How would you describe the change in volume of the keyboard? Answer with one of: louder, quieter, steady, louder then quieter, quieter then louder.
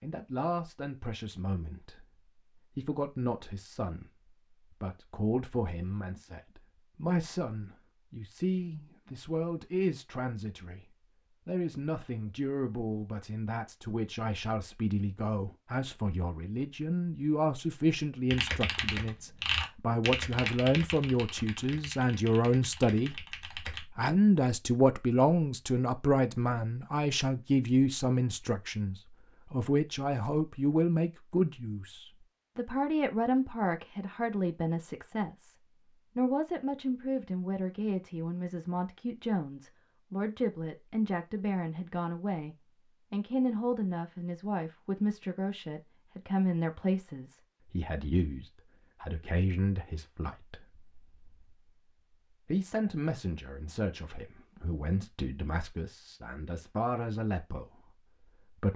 quieter.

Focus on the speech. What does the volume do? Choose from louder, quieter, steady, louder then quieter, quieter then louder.
louder then quieter.